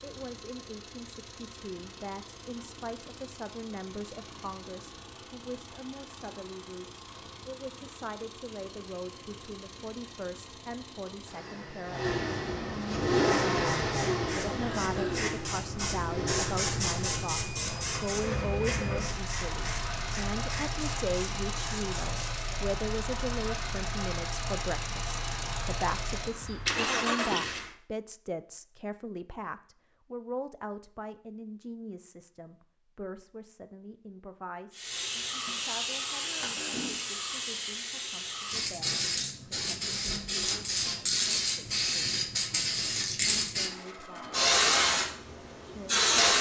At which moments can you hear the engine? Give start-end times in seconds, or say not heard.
0.0-27.7.